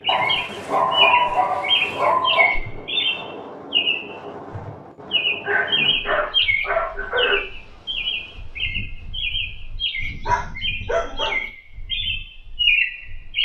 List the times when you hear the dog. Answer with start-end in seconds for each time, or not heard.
0.1-2.5, 5.1-7.5, 10.0-11.4.